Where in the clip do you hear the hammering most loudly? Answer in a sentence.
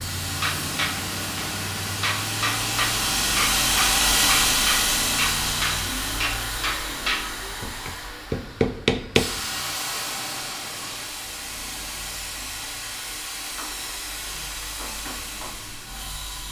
The volume of the hammering peaks at 9 seconds.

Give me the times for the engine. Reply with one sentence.
The engine can be heard from 0.0 to 16.4 s.